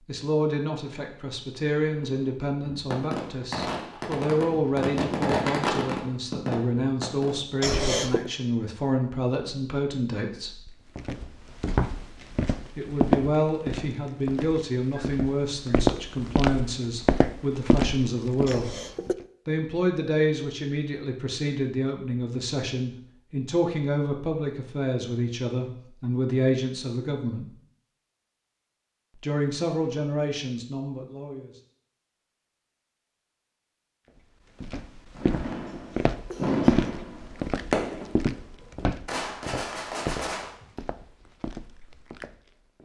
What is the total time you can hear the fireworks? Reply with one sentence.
You can hear the fireworks for 11 seconds altogether.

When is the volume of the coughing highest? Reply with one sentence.
The loudest moment of the coughing is at 8 seconds.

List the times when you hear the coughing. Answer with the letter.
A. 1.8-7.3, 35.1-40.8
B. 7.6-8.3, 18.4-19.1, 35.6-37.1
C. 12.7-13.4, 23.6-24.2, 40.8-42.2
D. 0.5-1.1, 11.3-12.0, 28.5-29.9
B.